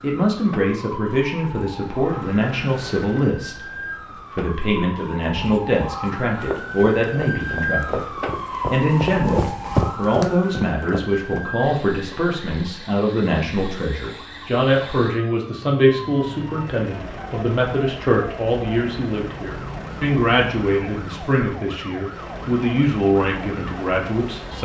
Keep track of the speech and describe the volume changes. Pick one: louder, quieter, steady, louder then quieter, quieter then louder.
steady.